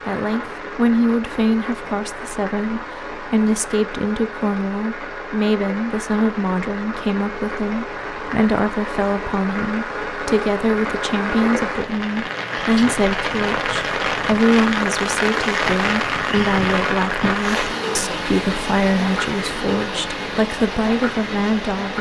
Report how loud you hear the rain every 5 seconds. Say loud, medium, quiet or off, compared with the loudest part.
medium, medium, loud, loud, medium.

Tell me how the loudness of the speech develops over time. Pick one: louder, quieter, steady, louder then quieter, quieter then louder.
steady.